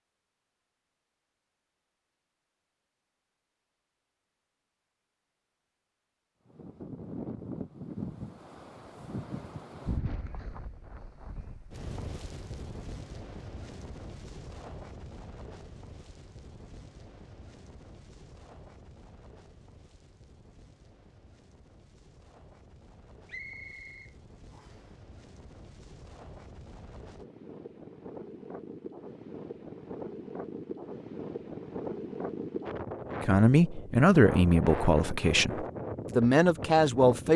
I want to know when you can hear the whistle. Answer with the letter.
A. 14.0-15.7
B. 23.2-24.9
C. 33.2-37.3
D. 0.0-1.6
B.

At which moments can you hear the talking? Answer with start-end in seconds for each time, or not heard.
33.2-37.3.